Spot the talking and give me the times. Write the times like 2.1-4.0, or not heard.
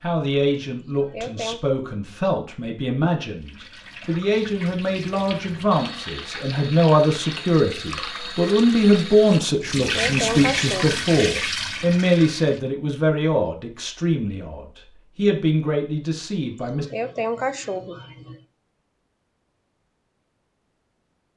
0.0-16.9.